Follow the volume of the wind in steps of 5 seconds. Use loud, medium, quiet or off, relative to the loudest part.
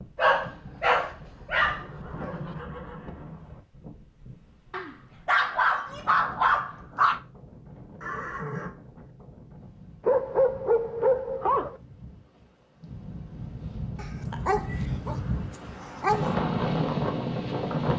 quiet, quiet, medium, loud.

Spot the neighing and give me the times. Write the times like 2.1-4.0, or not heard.
1.6-3.6, 8.0-8.8, 14.3-15.0.